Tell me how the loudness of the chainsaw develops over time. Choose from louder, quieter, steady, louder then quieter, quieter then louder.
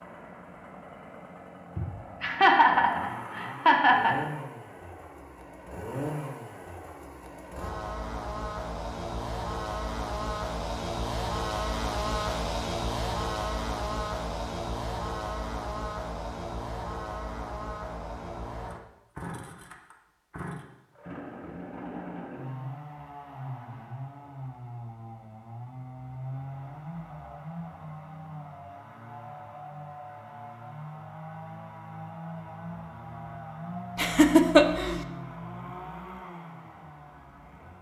louder then quieter.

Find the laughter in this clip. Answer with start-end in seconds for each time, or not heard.
1.8-4.2, 34.0-35.0.